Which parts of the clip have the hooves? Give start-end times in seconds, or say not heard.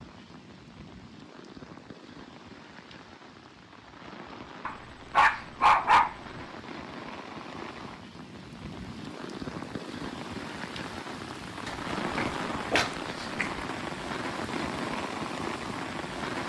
not heard.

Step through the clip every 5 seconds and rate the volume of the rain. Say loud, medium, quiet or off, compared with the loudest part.
quiet, medium, loud, loud.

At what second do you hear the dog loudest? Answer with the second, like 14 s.
6 s.